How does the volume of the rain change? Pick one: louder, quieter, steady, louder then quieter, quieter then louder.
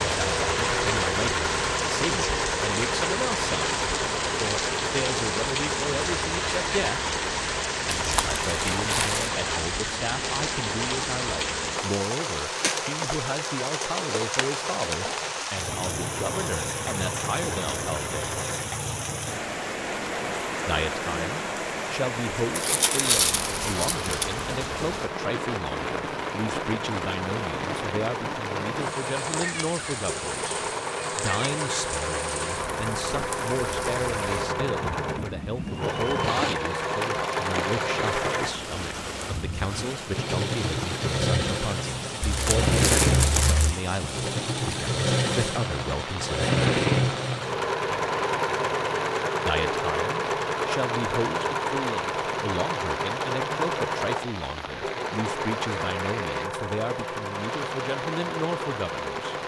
quieter.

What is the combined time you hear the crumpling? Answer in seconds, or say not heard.
5 s.